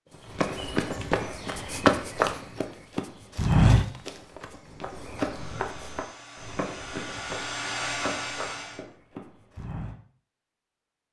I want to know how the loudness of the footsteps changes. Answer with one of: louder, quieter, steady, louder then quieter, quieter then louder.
quieter.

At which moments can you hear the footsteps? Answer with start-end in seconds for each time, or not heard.
0.2-9.9.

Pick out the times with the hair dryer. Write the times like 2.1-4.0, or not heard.
5.2-8.8.